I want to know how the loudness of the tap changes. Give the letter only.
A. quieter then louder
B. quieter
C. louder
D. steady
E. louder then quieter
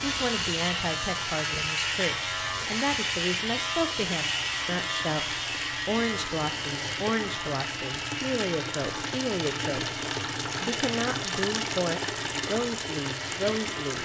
C.